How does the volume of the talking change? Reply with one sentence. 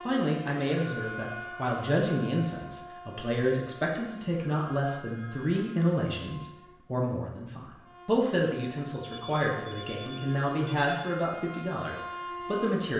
The volume of the talking stays about the same.